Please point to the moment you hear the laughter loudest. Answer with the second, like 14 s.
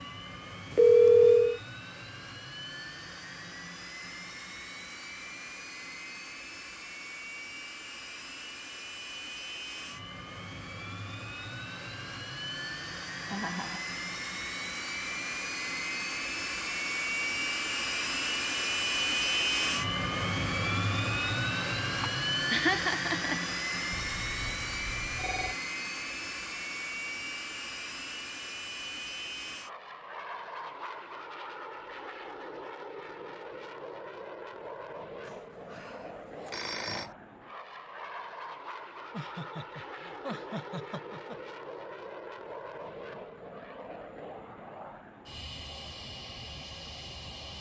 23 s.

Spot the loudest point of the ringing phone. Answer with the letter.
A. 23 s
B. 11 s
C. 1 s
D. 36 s
C.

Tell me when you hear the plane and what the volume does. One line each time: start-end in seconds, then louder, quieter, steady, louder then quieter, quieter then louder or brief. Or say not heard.
0.0-47.5 louder then quieter.